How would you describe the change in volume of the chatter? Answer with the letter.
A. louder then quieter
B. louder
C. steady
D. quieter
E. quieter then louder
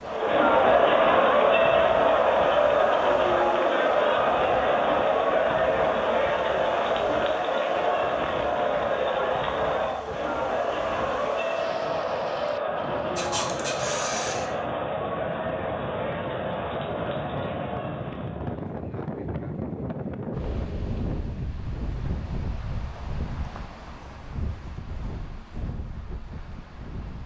D.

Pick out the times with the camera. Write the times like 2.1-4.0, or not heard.
13.2-14.5.